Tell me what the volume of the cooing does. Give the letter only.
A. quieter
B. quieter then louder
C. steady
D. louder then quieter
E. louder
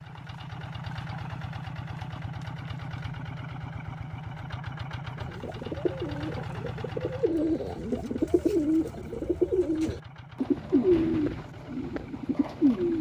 D.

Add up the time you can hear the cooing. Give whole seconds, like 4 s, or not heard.
8 s.